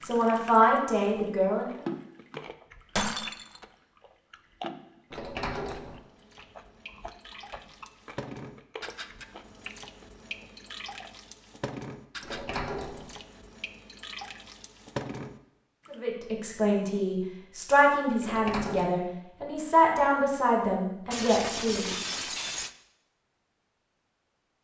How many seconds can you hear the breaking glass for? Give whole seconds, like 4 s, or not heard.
2 s.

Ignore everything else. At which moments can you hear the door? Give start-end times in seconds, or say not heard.
5.1-6.0, 12.2-13.2, 18.2-18.9.